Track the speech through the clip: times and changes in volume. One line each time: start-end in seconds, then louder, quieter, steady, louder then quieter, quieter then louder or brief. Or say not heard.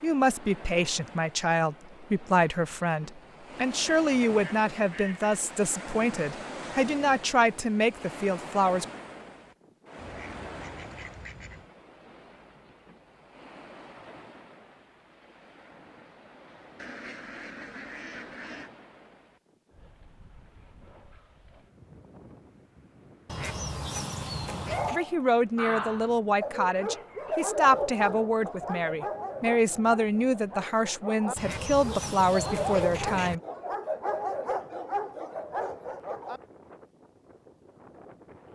0.0-8.8 steady
24.9-33.4 steady.